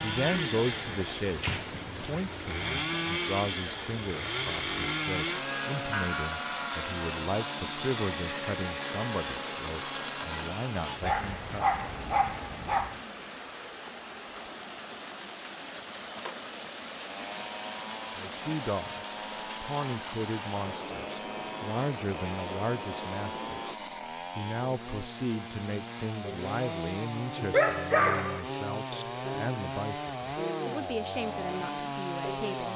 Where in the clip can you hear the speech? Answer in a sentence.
The speech can be heard from 0.0 to 11.8 s and from 18.1 to 32.7 s.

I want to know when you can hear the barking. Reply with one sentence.
The barking can be heard from 11.0 to 13.0 s and from 27.5 to 29.1 s.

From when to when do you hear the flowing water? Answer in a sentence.
You can hear the flowing water from 0.0 to 23.8 s.